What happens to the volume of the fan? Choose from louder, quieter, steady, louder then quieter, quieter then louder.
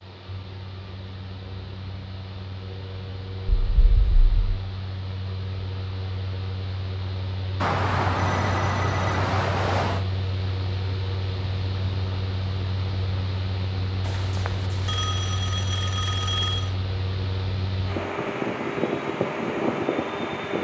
louder.